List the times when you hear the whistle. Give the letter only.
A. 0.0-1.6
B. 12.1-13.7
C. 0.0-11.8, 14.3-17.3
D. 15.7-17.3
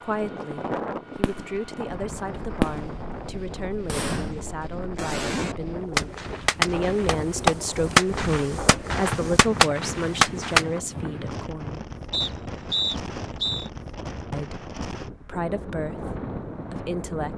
B.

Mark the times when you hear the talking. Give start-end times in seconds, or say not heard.
0.0-11.8, 14.3-17.3.